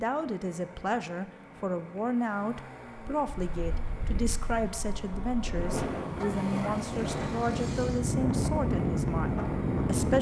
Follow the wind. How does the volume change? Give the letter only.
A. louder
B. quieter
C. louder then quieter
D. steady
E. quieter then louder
A.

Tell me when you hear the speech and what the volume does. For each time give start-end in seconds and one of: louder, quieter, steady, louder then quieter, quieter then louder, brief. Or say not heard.
0.0-10.1 steady.